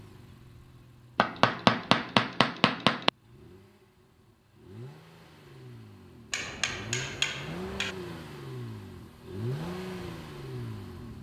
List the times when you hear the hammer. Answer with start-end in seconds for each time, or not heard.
1.1-3.1, 6.3-8.0.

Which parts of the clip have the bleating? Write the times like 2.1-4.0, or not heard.
not heard.